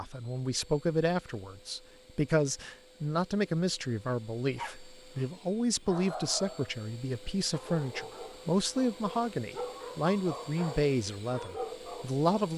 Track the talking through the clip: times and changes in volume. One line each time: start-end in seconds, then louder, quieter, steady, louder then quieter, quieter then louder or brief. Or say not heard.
0.0-12.5 steady.